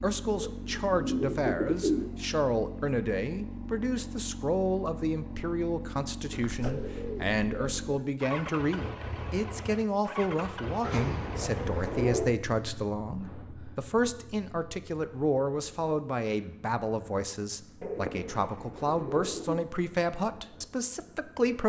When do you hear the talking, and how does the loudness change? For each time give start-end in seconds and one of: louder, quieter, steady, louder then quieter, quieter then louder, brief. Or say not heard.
0.0-21.6 steady.